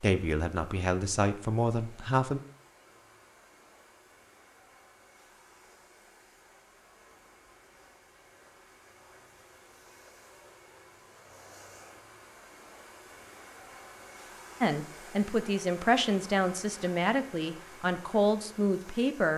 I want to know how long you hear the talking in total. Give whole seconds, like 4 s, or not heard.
7 s.